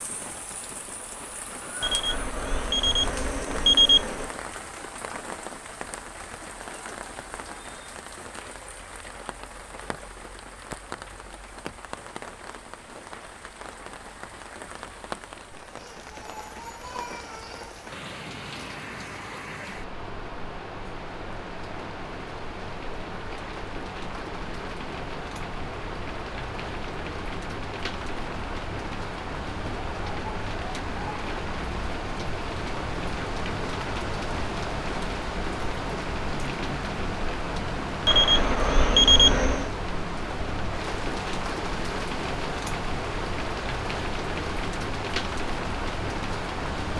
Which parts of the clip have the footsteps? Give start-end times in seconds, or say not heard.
not heard.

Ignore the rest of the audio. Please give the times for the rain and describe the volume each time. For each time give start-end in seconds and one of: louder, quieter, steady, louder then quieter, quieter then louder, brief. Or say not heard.
0.0-46.9 louder.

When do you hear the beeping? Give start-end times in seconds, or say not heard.
1.8-4.3, 38.0-39.7.